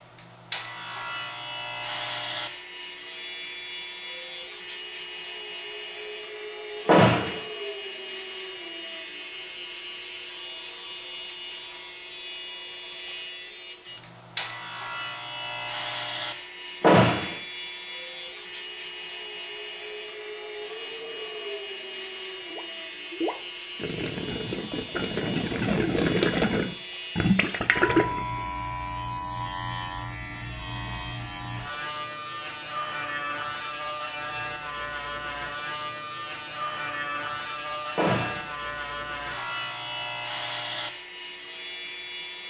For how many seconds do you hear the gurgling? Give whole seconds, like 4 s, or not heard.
6 s.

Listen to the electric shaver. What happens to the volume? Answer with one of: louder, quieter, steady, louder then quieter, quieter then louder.
steady.